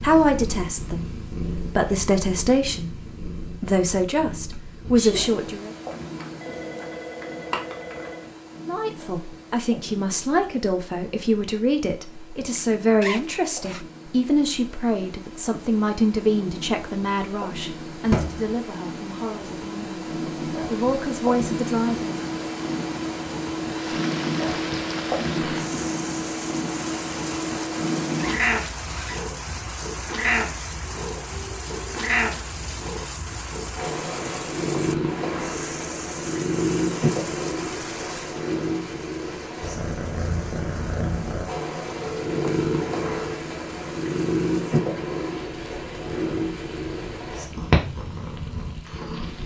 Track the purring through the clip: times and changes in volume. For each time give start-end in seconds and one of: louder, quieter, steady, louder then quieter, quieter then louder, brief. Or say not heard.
0.0-49.4 louder.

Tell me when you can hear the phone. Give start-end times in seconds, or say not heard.
5.9-8.3, 18.1-18.6, 42.0-43.4.